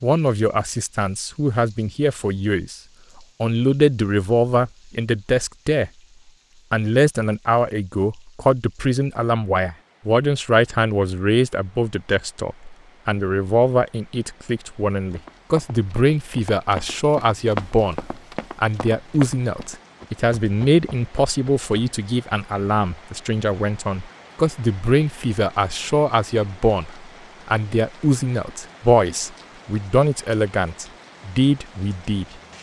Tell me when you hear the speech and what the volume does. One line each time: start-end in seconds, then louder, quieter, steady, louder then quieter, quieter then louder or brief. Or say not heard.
0.0-2.8 brief
3.4-5.9 brief
6.7-32.2 steady.